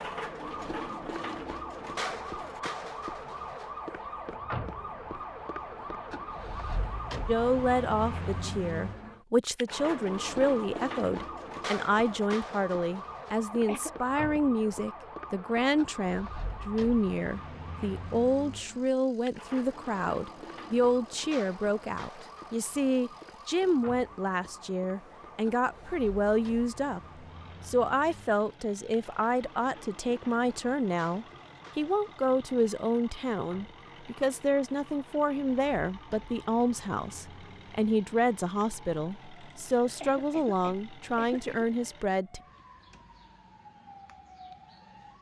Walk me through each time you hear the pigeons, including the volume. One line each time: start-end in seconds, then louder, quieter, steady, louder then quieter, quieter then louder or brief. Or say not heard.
not heard.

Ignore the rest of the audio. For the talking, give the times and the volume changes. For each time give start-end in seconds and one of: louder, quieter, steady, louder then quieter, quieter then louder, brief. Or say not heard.
7.2-42.4 steady.